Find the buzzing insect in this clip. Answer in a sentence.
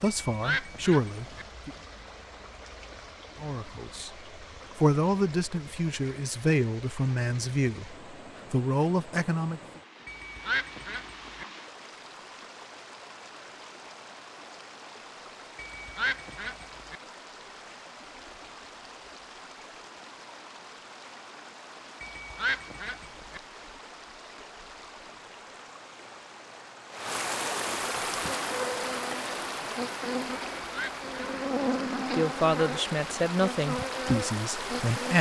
You can hear the buzzing insect from 28.1 to 35.1 s.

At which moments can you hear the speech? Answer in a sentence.
The speech can be heard from 0.0 to 1.7 s, from 3.4 to 4.1 s, from 4.8 to 9.6 s and from 32.1 to 35.1 s.